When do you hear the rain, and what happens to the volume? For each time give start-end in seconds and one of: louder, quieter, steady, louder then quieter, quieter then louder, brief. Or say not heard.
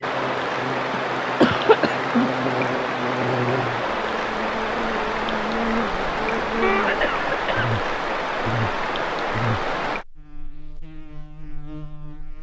0.0-10.1 steady.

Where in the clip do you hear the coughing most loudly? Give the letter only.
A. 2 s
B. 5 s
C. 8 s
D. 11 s
A.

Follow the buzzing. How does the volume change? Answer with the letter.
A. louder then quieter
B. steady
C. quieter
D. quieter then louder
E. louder
C.